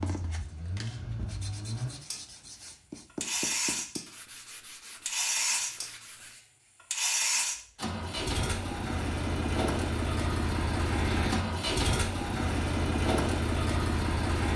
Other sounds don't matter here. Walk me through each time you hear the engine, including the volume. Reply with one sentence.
You can hear the engine from 0.0 to 14.5 s, getting louder.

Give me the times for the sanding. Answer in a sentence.
You can hear the sanding from 0.0 to 6.3 s.